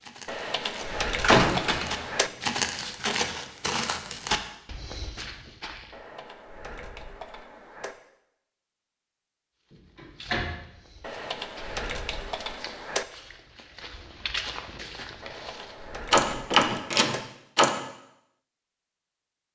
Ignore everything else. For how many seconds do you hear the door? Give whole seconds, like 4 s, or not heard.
4 s.